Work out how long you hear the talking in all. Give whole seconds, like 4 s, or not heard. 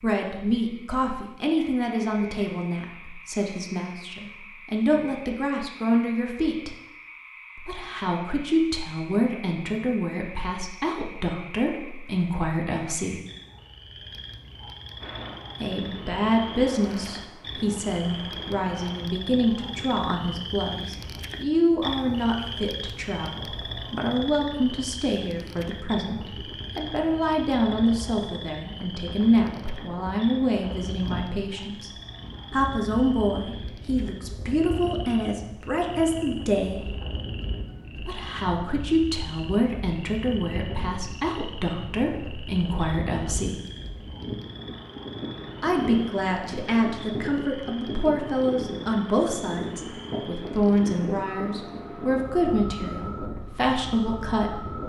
48 s.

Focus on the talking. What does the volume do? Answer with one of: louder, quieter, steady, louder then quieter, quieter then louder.
steady.